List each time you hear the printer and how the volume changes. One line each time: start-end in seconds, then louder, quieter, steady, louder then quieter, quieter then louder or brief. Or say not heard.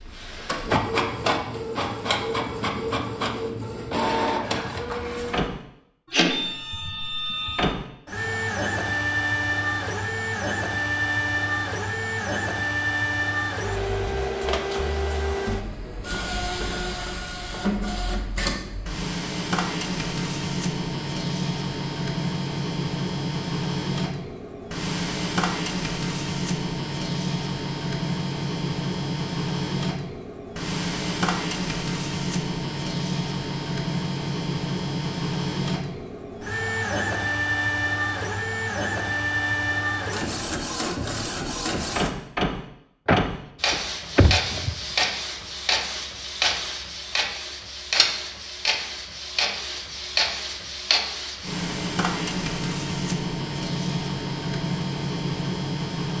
0.0-56.1 steady.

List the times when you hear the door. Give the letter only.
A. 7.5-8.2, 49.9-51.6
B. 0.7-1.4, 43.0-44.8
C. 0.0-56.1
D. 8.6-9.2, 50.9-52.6
B.